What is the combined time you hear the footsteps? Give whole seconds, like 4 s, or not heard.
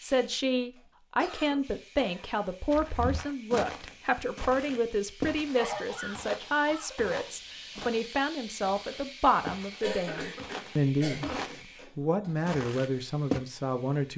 10 s.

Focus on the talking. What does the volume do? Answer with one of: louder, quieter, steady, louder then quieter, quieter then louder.
steady.